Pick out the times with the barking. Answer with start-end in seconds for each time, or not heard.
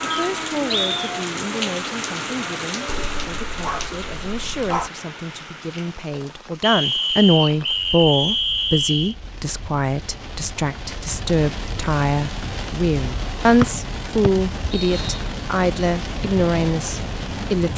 2.9-4.9.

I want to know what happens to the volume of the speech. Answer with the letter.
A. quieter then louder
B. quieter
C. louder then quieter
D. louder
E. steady
D.